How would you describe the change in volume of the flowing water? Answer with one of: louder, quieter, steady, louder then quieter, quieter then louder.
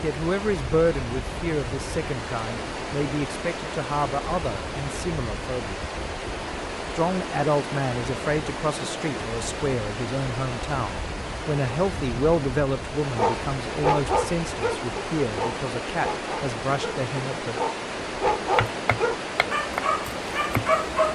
steady.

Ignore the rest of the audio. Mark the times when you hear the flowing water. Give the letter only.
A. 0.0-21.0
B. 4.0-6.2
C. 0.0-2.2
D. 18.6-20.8
A.